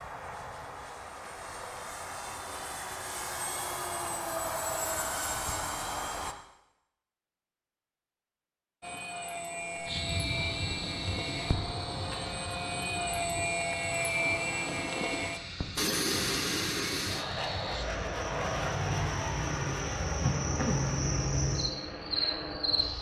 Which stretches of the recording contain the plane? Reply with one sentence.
You can hear the plane from 0.0 to 6.3 s and from 8.8 to 22.9 s.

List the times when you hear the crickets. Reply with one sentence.
The crickets can be heard from 9.7 to 22.9 s.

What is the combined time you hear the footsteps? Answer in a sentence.
The footsteps can't be heard in this clip.